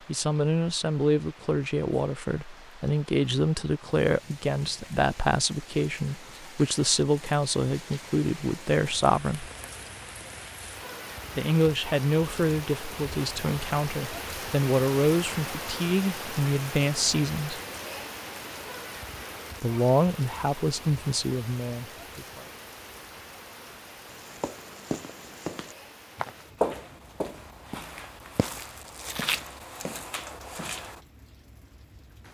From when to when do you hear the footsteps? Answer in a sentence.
The footsteps can be heard from 24.1 to 31.0 s.